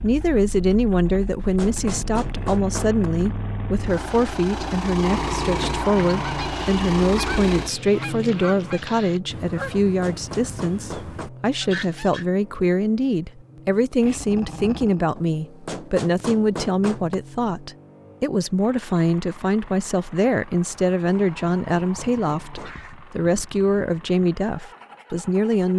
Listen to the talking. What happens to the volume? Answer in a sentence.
The volume of the talking stays about the same.